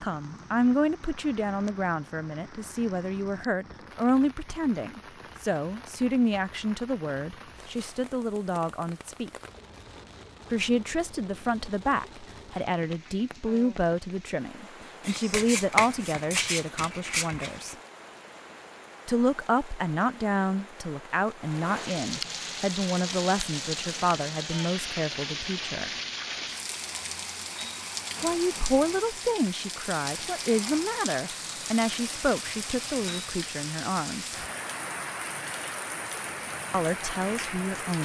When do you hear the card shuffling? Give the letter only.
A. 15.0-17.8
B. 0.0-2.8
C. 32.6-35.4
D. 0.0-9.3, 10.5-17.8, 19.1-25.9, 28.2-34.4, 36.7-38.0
A.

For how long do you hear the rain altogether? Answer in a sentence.
The rain can be heard for 38 seconds in total.